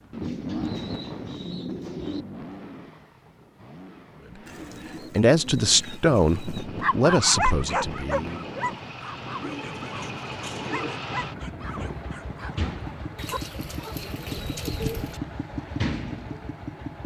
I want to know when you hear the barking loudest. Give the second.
7 s.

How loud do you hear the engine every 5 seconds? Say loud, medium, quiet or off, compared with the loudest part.
medium, medium, loud, loud.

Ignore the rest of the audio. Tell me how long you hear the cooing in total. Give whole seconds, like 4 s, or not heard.
8 s.